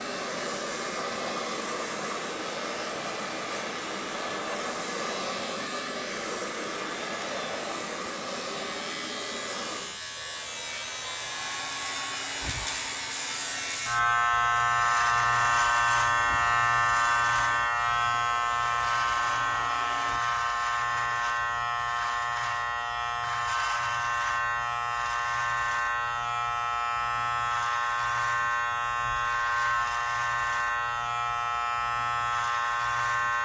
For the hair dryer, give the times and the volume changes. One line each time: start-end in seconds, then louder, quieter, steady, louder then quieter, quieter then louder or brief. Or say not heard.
0.0-20.2 quieter.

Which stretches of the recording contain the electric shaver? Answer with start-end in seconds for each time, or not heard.
0.0-33.3.